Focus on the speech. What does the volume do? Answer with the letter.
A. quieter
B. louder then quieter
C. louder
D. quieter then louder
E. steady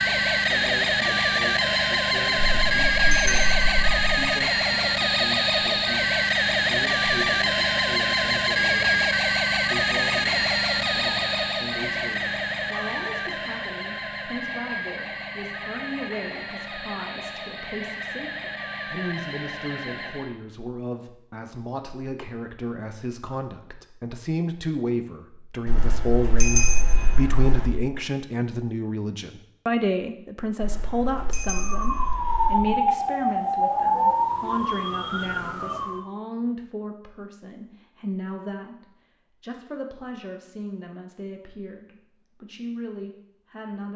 B.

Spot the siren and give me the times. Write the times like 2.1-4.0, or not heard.
0.0-20.3, 31.6-36.0.